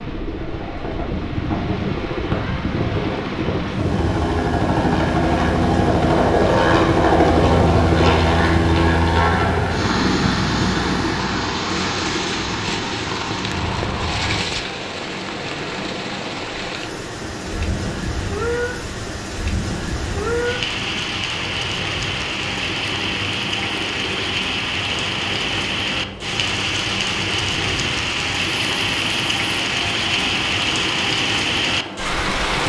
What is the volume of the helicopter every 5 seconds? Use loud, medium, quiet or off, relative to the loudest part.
medium, loud, medium, quiet, quiet, quiet, quiet.